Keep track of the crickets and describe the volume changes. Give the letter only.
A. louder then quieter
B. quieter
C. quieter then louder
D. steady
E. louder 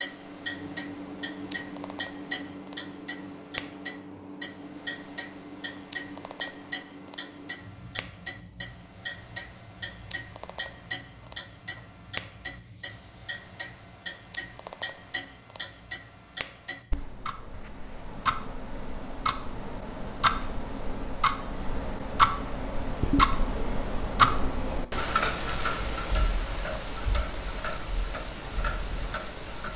B.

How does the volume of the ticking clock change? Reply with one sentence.
The volume of the ticking clock goes up.